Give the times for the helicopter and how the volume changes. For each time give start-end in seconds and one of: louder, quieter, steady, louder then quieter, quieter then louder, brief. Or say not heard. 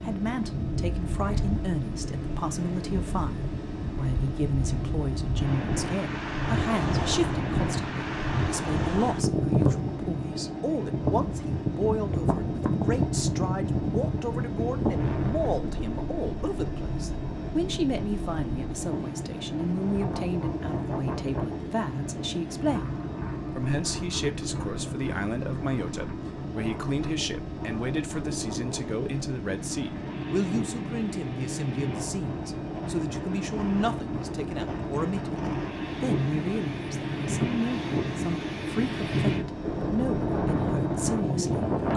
0.0-41.9 steady.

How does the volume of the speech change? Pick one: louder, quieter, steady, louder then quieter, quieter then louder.
steady.